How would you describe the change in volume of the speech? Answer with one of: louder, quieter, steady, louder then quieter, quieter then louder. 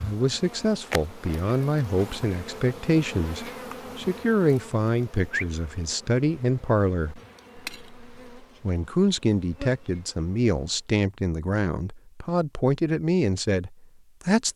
steady.